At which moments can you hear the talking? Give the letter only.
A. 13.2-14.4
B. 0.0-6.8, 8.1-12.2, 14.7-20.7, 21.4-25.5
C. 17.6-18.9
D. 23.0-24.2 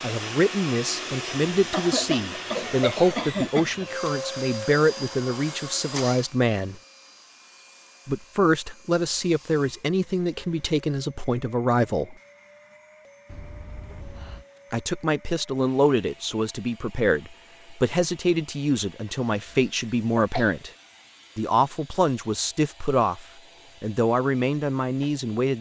B.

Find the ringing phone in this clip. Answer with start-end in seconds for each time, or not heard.
13.2-14.4.